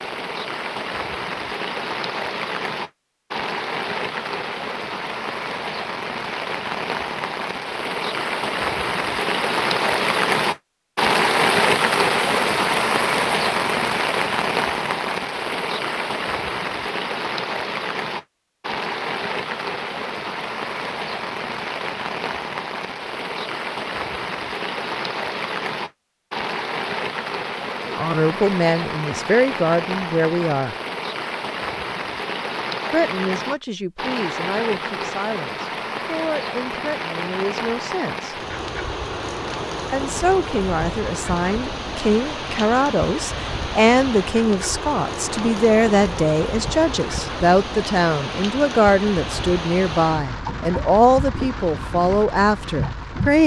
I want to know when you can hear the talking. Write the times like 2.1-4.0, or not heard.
27.9-30.8, 32.9-38.4, 39.9-53.4.